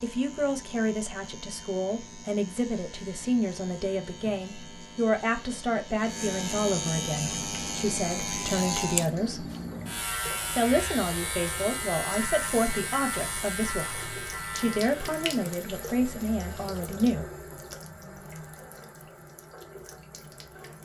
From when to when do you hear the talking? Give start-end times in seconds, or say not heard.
0.0-9.4, 10.6-17.2.